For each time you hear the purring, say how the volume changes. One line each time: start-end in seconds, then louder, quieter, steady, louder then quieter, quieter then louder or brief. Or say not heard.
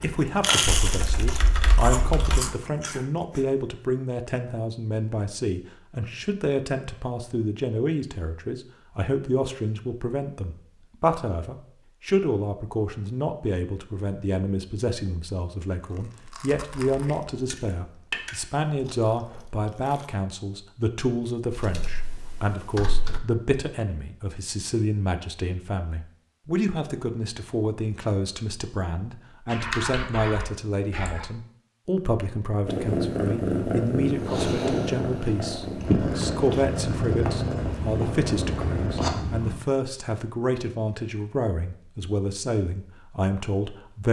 32.6-39.6 steady.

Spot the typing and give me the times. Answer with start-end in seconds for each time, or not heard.
0.7-2.5, 21.5-23.2, 29.5-31.2.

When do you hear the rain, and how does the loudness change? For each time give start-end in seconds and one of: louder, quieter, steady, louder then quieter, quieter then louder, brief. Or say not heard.
not heard.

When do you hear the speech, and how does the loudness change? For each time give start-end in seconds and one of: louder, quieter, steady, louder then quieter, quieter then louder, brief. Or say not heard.
0.0-44.0 steady.